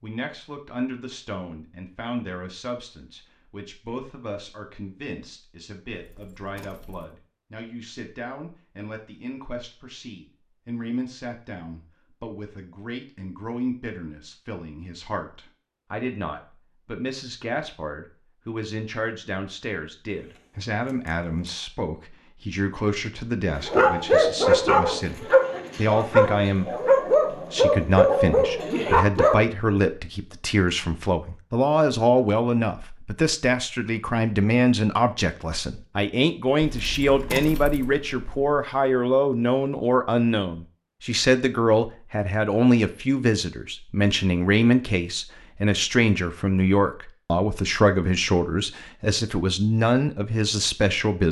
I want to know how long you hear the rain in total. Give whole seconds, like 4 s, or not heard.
not heard.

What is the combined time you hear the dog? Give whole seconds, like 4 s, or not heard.
6 s.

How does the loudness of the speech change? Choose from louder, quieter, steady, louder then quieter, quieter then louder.
louder.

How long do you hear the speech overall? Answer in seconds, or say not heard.
51 s.